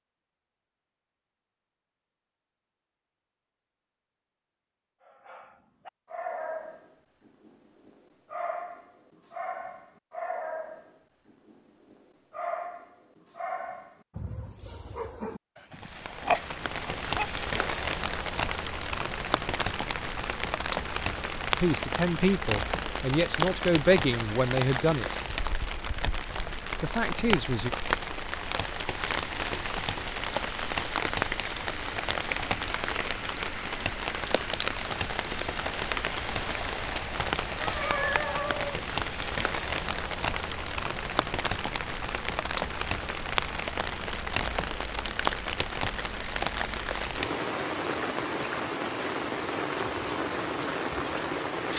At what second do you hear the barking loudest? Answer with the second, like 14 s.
16 s.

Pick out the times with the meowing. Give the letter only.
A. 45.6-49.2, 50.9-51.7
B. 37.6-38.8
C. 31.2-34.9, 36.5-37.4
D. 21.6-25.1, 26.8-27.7
B.